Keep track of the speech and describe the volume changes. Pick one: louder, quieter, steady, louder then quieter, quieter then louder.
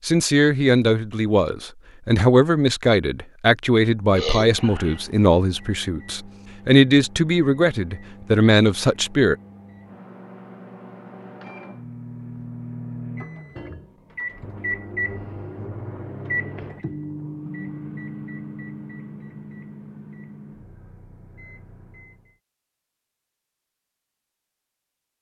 steady.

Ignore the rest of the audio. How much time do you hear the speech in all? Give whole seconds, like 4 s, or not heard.
9 s.